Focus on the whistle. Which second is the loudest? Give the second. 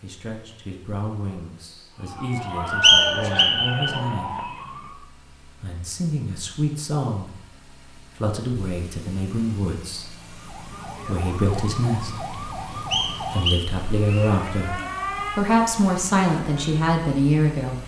3 s.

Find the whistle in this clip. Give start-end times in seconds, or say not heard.
2.8-3.5, 12.9-14.3.